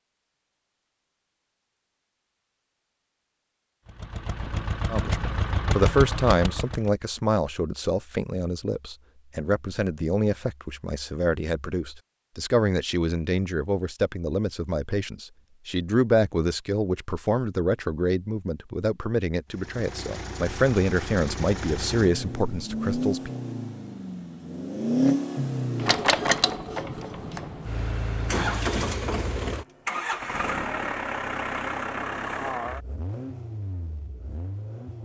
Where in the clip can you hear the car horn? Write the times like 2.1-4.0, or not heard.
not heard.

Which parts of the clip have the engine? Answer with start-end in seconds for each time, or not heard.
3.9-6.9, 19.5-35.0.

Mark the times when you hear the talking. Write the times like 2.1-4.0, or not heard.
4.9-23.3.